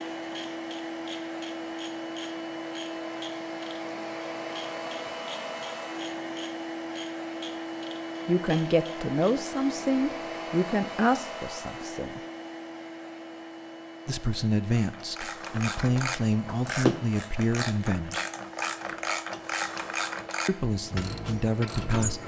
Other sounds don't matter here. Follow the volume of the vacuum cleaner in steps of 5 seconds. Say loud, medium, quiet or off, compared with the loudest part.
loud, loud, loud, medium, medium.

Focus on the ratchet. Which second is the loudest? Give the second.
17 s.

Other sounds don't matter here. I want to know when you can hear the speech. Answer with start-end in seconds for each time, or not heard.
8.2-12.2, 14.1-18.2, 20.4-22.2.